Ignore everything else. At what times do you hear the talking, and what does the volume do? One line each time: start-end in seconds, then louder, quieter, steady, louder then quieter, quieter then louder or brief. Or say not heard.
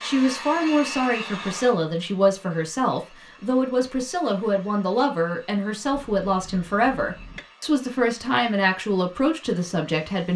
0.0-10.3 steady.